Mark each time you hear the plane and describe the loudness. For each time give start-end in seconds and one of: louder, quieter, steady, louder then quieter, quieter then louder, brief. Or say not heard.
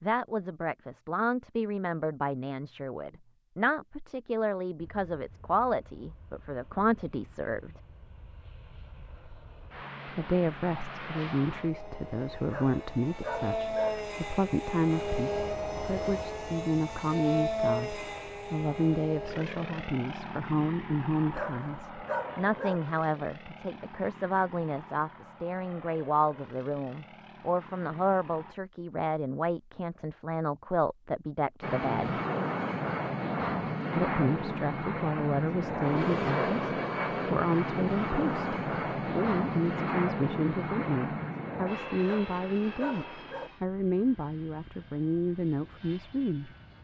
4.8-28.6 louder then quieter
31.6-46.7 quieter.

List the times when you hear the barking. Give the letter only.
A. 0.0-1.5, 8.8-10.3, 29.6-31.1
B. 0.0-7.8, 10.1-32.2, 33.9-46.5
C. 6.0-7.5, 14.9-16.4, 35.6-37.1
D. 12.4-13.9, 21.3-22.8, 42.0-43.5
D.